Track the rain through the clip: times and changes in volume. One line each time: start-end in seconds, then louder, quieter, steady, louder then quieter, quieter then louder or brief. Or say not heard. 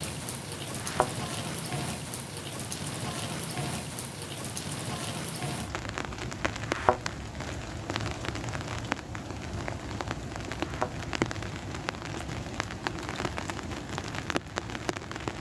0.0-15.3 steady.